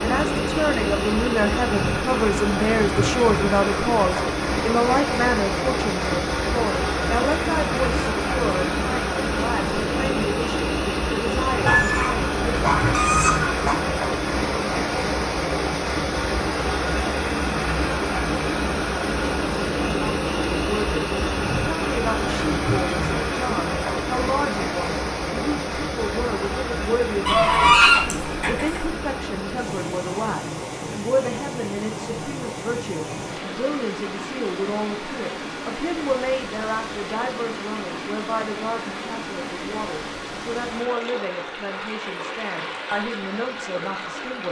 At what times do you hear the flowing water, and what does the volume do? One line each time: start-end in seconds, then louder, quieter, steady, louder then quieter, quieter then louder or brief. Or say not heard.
0.0-44.4 quieter.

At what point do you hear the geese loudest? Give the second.
28 s.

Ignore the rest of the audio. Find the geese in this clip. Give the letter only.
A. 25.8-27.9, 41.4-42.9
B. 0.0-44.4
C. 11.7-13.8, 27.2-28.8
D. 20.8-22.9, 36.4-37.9
C.